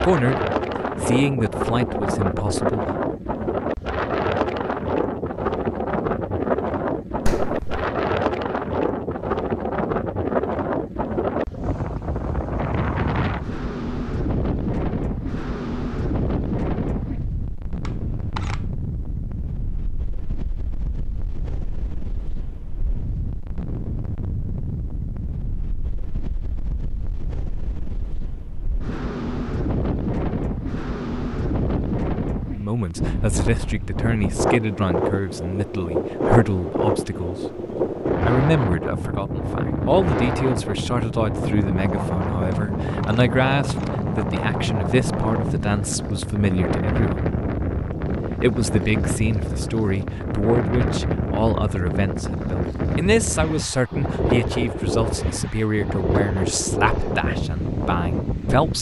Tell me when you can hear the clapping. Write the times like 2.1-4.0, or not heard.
7.2-7.8.